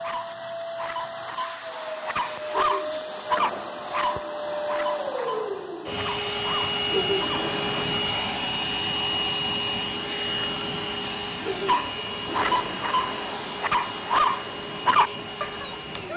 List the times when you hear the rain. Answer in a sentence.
You can't hear the rain here.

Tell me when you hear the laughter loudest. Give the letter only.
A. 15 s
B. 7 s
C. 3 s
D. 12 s
B.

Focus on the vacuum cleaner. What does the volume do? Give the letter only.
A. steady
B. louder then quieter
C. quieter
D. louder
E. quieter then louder
B.